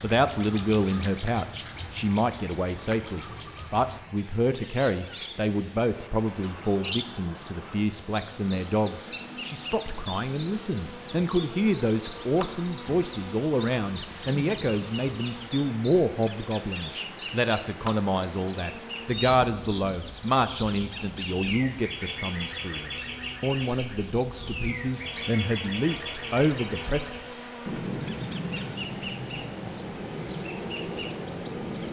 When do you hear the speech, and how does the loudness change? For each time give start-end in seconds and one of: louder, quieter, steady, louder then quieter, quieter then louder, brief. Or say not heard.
0.0-27.1 steady.